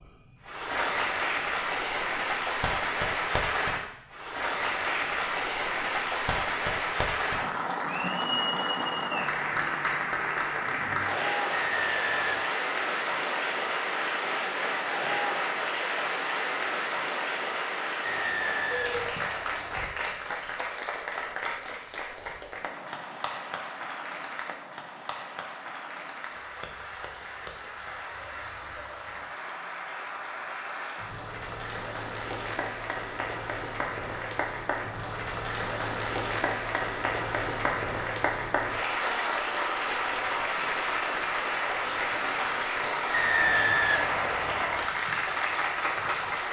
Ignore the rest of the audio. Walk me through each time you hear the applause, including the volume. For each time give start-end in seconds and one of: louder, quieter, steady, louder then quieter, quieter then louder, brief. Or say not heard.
0.0-46.4 quieter then louder.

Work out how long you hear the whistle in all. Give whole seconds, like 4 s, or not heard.
5 s.